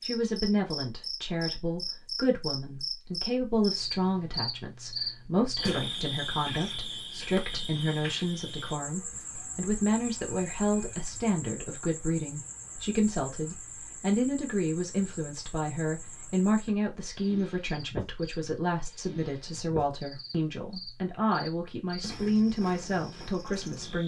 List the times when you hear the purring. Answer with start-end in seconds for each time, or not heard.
not heard.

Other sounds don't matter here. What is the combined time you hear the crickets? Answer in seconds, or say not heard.
24 s.